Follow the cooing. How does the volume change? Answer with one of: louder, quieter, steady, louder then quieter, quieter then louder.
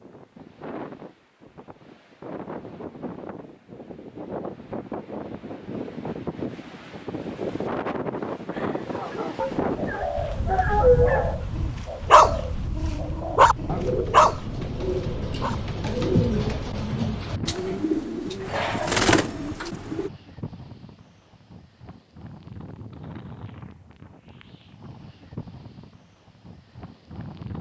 louder.